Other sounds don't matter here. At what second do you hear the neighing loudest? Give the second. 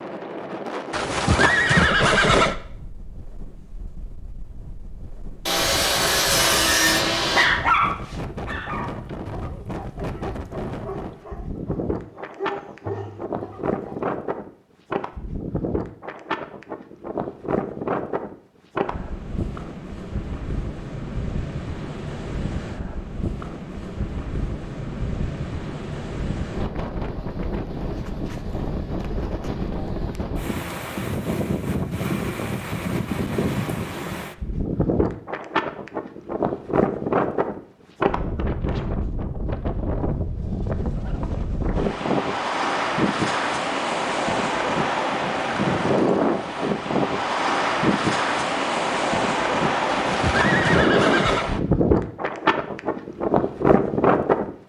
2 s.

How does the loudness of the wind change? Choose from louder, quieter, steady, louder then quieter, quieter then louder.
louder.